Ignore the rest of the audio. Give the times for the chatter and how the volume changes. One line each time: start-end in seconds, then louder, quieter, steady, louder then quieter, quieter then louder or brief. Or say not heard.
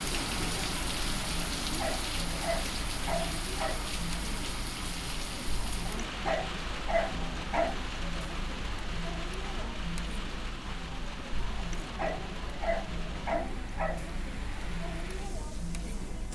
0.0-16.3 steady.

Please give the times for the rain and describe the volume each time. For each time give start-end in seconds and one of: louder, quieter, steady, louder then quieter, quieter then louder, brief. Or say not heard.
0.0-16.3 quieter.